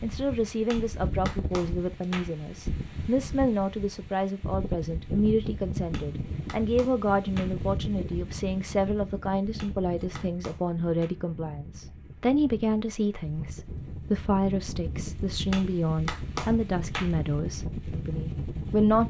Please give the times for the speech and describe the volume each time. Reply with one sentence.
You can hear the speech from 0.0 to 19.0 s, at a steady volume.